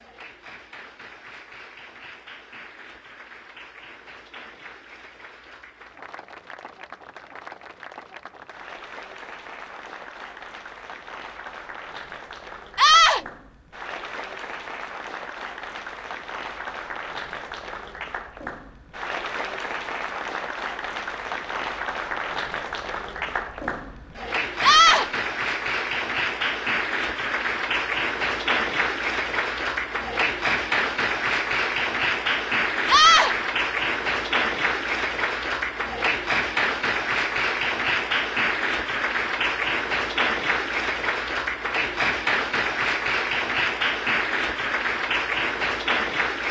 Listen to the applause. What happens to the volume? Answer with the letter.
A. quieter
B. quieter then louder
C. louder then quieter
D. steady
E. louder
E.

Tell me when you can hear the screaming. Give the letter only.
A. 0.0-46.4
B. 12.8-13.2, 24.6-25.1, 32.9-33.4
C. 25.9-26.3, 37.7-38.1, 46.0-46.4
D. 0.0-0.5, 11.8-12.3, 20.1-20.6
B.